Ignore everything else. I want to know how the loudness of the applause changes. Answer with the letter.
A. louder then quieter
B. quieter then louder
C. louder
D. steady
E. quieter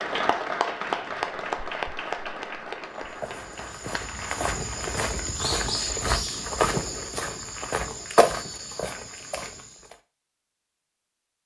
E.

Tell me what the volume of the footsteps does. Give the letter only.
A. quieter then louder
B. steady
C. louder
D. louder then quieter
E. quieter
D.